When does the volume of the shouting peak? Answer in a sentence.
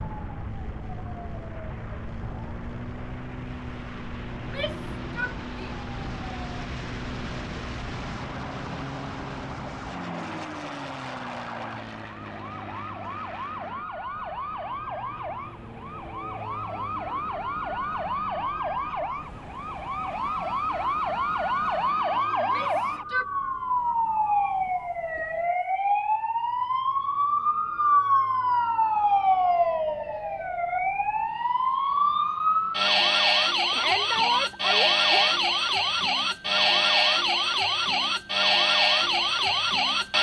The loudest moment of the shouting is at 34 seconds.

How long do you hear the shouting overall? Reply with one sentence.
You can hear the shouting for 4 seconds altogether.